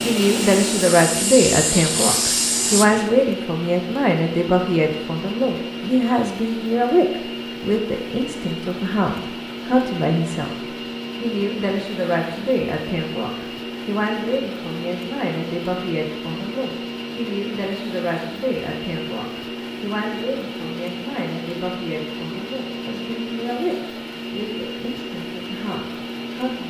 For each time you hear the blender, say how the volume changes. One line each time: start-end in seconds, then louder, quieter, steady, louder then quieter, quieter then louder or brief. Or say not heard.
0.0-26.6 steady.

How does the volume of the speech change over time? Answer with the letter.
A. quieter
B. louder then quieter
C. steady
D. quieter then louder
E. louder
A.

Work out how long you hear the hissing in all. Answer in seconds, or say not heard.
3 s.